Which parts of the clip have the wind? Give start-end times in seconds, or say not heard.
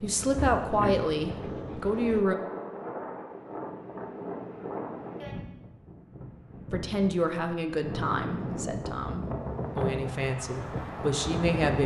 0.0-11.8.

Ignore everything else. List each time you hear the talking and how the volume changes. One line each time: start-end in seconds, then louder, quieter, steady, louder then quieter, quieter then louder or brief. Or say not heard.
0.0-2.4 brief
6.7-11.8 quieter then louder.